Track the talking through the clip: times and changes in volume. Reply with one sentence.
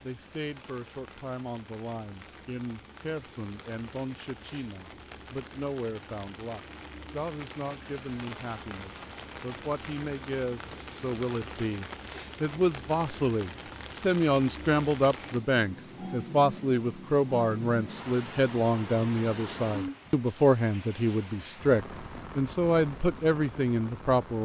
You can hear the talking from 0.0 to 24.4 s, getting louder.